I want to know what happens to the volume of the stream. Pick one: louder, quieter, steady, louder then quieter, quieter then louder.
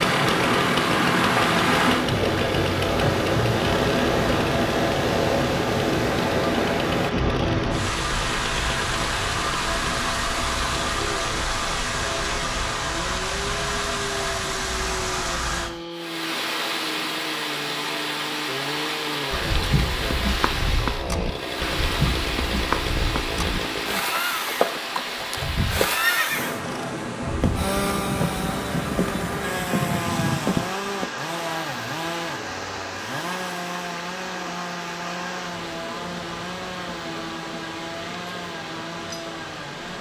quieter.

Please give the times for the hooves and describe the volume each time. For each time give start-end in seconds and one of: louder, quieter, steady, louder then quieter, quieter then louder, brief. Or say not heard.
19.3-31.1 steady.